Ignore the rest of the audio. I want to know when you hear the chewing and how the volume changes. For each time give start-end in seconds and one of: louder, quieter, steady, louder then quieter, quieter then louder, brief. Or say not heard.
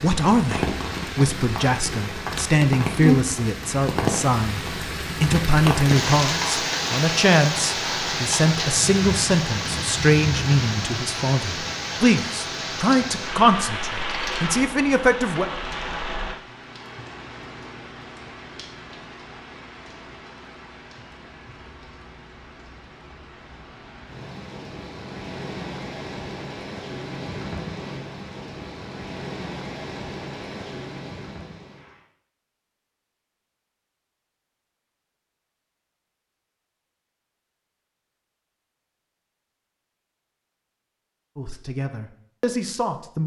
not heard.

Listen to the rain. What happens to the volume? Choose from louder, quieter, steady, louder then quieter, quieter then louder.
quieter then louder.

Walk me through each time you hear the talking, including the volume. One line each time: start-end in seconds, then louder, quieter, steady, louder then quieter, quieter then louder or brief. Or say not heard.
0.0-15.5 steady
41.4-43.2 brief.